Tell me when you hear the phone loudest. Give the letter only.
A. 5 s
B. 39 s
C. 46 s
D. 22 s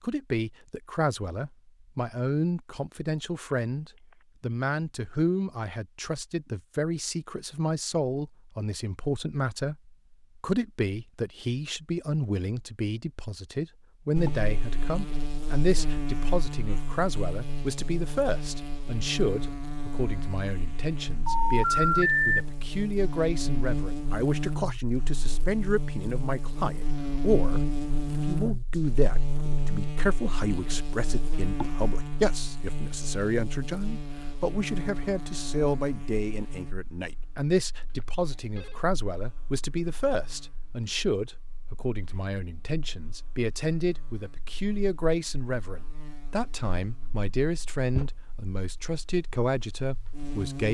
D.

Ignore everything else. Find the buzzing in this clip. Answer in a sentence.
You can hear the buzzing from 14.2 to 50.7 s.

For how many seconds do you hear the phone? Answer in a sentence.
The phone can be heard for 3 seconds in total.